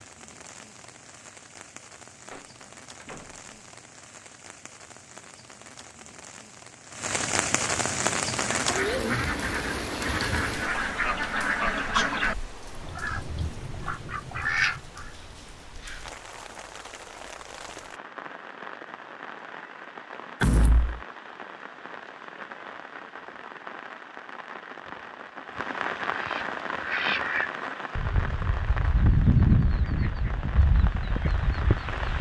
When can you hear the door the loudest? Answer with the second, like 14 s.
21 s.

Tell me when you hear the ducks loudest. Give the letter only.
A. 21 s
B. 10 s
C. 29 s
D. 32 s
C.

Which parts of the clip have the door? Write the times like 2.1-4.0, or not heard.
2.3-3.4, 20.4-21.0.